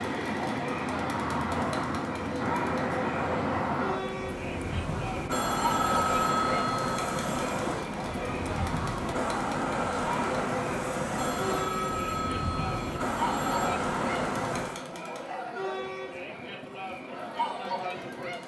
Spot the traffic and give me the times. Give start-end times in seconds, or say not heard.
0.0-14.8.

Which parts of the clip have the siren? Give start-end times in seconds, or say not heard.
not heard.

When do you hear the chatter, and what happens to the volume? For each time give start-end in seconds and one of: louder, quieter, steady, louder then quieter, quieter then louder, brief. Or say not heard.
0.0-18.4 steady.